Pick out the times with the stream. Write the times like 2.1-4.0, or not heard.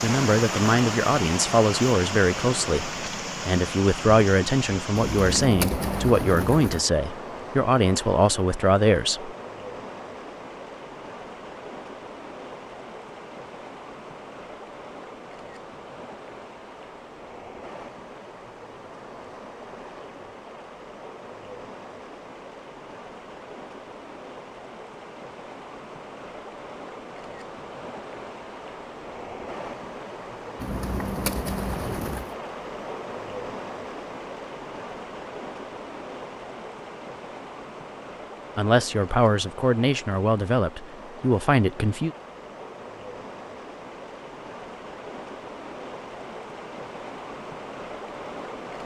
0.0-48.8.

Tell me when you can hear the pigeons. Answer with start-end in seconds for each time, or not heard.
5.0-6.8, 30.6-32.4.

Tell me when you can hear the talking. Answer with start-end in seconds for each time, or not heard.
0.0-9.3, 38.5-42.1.